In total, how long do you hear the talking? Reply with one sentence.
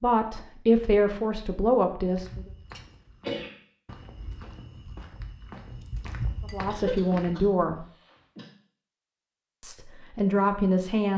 You can hear the talking for 5 seconds altogether.